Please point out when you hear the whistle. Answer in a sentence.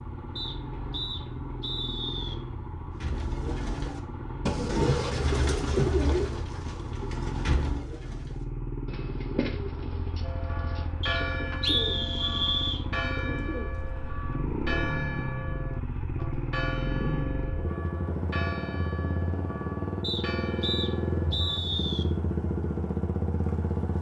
You can hear the whistle from 0.3 to 2.4 s, from 11.0 to 12.8 s and from 20.0 to 22.1 s.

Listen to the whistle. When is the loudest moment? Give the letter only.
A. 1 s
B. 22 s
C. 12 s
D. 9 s
C.